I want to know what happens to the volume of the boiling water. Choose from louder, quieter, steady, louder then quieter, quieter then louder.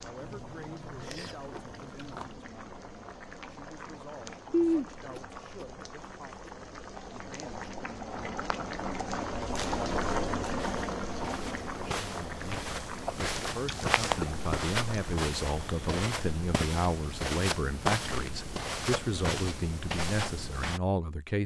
louder then quieter.